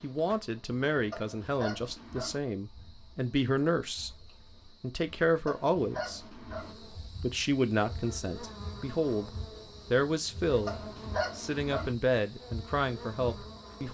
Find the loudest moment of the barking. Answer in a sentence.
The volume of the barking peaks at 11 seconds.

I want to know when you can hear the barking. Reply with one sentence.
You can hear the barking from 1.1 to 2.4 s, from 5.5 to 6.8 s and from 10.7 to 11.9 s.